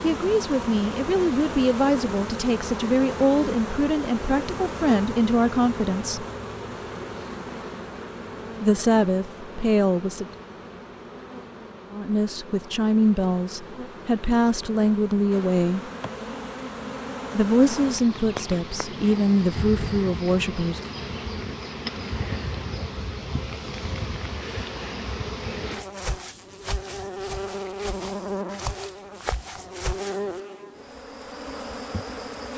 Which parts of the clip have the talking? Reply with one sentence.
The talking can be heard from 0.0 to 6.2 s, from 8.6 to 10.2 s, from 11.9 to 15.9 s and from 17.3 to 20.9 s.